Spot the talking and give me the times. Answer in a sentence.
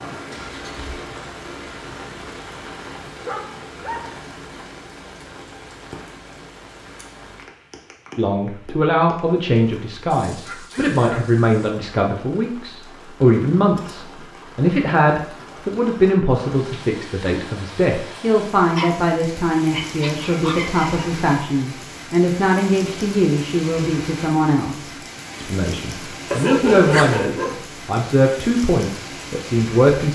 You can hear the talking from 8.2 to 30.1 s.